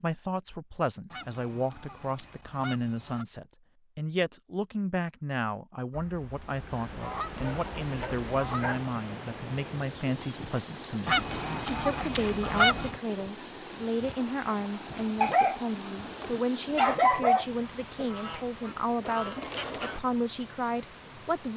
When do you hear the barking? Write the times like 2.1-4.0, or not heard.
7.2-8.9, 15.2-17.4.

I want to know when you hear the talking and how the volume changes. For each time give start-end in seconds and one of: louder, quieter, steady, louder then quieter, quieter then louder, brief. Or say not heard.
0.0-21.5 steady.